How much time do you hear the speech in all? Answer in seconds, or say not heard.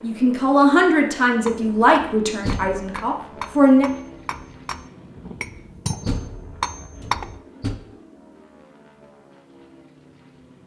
4 s.